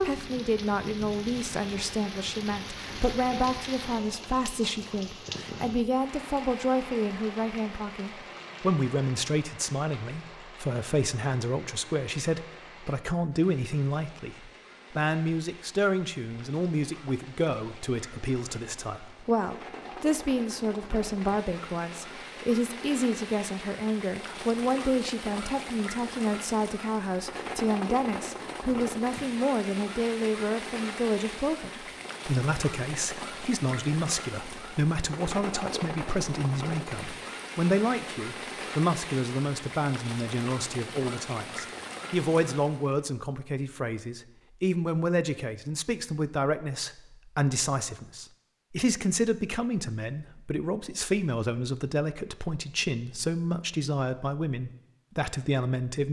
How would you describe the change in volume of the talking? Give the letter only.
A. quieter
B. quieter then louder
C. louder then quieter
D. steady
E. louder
D.